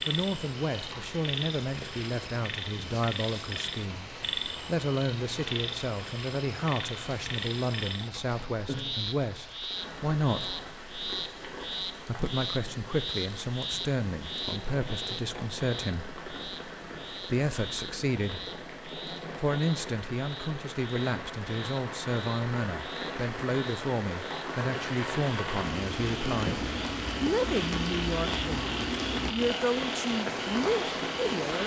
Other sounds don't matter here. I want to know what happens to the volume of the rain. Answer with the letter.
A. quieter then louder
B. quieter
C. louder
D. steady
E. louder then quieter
C.